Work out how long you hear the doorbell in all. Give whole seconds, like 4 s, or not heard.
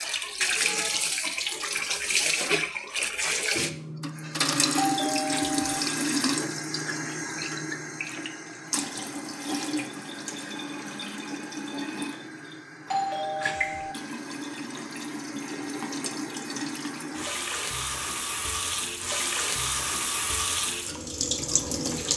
2 s.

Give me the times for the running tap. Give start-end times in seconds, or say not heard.
0.0-22.1.